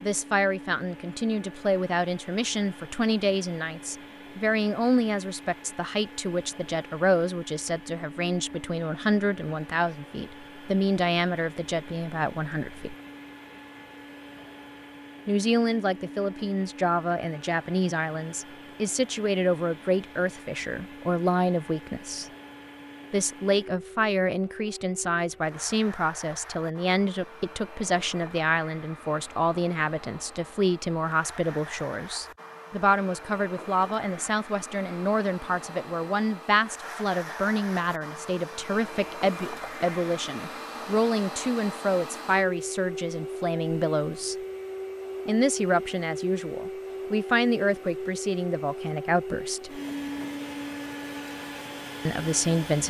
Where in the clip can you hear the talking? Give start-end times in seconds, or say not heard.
0.0-12.9, 15.2-22.2, 23.1-44.4, 45.2-49.8, 52.0-52.8.